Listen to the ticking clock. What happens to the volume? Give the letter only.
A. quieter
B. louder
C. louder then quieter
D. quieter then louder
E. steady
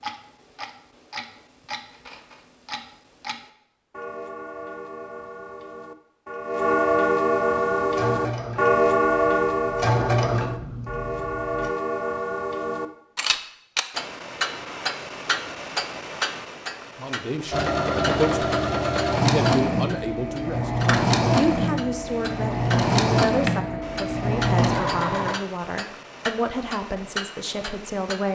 C.